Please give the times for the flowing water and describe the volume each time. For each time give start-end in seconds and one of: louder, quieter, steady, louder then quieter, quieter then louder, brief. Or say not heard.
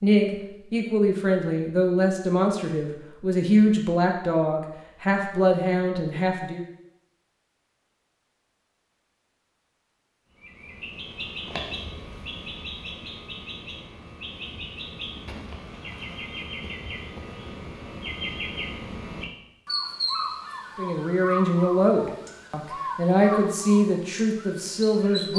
not heard.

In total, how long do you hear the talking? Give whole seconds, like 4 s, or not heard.
11 s.